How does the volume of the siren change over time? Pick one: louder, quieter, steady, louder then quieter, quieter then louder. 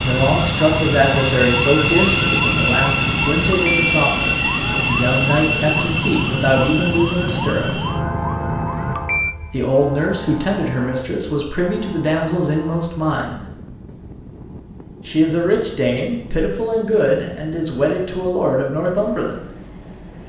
steady.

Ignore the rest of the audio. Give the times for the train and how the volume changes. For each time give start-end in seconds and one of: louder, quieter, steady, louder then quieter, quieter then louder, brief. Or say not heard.
0.0-20.2 quieter.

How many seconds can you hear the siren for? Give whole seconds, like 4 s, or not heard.
9 s.